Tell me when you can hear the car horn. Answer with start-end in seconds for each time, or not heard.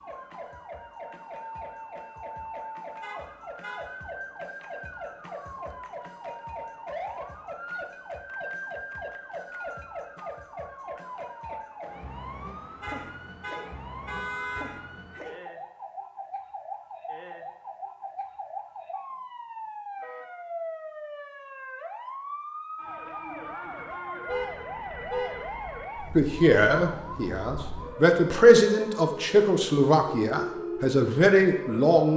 3.0-3.9, 12.8-14.7, 24.2-25.6.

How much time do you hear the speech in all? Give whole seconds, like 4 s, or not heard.
6 s.